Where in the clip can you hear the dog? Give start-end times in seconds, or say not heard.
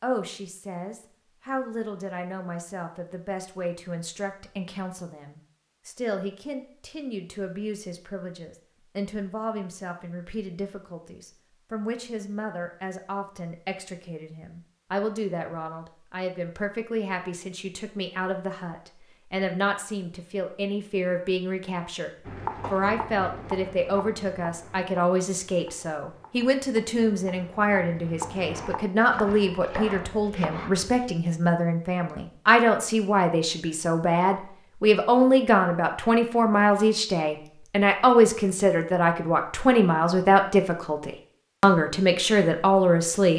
not heard.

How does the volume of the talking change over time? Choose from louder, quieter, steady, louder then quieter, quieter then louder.
louder.